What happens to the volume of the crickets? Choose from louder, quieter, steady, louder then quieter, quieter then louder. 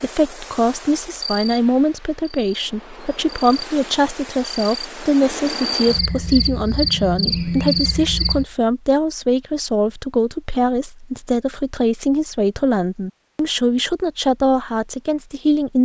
quieter then louder.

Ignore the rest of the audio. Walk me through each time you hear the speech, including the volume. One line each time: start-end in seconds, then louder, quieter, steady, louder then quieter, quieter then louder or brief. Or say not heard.
0.0-15.8 steady.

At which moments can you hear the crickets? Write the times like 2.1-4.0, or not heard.
0.0-8.4.